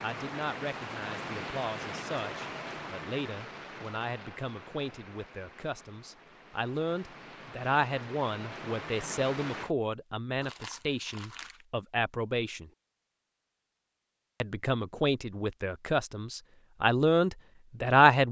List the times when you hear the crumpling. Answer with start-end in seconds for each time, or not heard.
10.4-11.7.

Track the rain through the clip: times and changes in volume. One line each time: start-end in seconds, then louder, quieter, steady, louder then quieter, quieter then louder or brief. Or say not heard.
0.0-9.7 quieter then louder.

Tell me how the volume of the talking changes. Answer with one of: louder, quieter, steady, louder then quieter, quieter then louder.
louder.